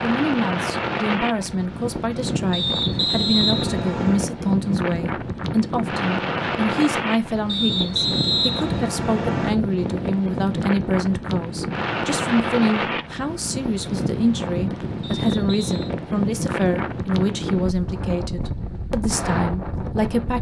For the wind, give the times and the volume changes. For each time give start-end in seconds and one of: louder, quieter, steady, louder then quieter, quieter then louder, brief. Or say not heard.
0.0-20.3 steady.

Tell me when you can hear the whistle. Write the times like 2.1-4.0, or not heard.
2.5-4.3, 7.5-9.5, 15.0-15.9.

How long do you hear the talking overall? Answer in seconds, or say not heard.
20 s.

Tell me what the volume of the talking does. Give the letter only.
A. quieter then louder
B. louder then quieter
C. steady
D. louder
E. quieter
C.